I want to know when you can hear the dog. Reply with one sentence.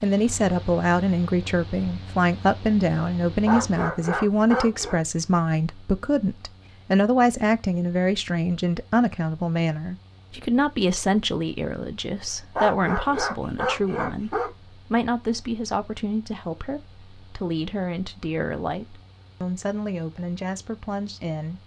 You can hear the dog from 3.5 to 5.0 s and from 12.6 to 14.5 s.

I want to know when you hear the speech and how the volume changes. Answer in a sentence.
The speech can be heard from 0.0 to 21.6 s, getting quieter.